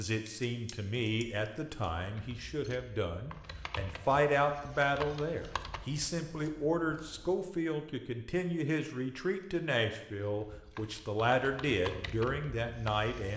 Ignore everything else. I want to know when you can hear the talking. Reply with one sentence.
The talking can be heard from 0.0 to 13.3 s.